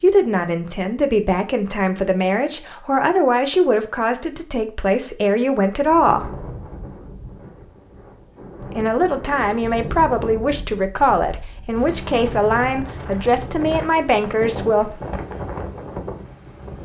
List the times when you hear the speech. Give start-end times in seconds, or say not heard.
0.0-6.3, 8.6-15.0.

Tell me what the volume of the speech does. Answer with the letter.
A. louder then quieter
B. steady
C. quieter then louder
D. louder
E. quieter
B.